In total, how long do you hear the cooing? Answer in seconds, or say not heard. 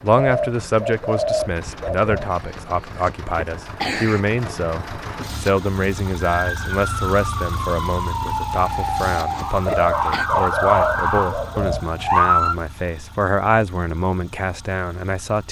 4 s.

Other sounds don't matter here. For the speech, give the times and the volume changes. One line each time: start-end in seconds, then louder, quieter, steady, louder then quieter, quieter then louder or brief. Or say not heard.
0.0-15.4 steady.